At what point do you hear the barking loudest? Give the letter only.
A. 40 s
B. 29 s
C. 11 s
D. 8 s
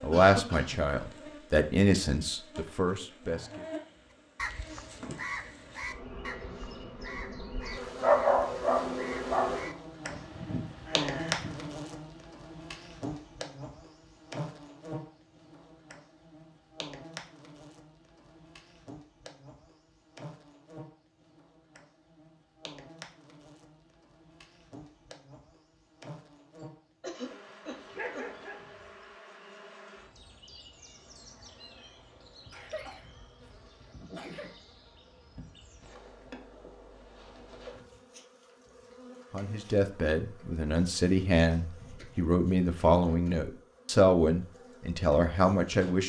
D.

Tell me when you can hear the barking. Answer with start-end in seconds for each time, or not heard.
8.0-9.6, 27.9-29.1.